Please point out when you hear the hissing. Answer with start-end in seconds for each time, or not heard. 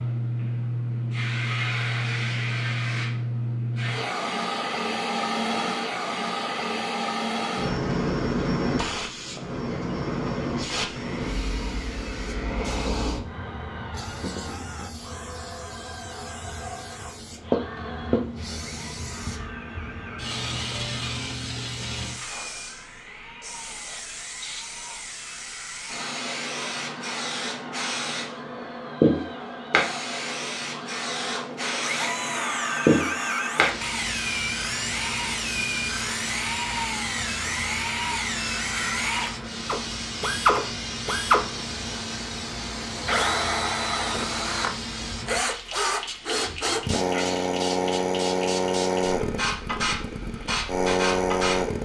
0.0-51.8.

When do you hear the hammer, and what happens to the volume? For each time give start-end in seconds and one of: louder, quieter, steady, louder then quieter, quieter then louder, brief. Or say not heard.
not heard.